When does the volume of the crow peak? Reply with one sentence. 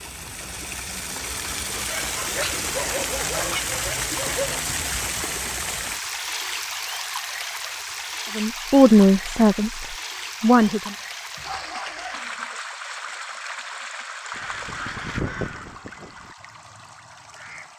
The volume of the crow peaks at 15 seconds.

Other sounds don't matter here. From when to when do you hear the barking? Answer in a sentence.
The barking can be heard from 1.8 to 4.7 s and from 10.9 to 12.4 s.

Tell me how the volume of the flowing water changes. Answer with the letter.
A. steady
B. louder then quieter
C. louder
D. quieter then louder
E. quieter
E.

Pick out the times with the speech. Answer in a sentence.
The speech can be heard from 8.3 to 10.9 s.